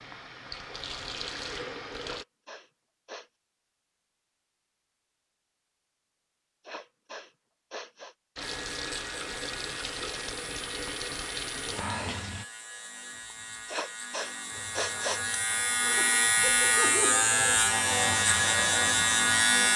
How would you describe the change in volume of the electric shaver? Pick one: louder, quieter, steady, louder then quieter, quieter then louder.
louder.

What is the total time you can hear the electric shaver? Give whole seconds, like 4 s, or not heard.
11 s.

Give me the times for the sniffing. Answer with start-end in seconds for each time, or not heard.
2.0-3.3, 6.7-8.2, 13.7-15.2.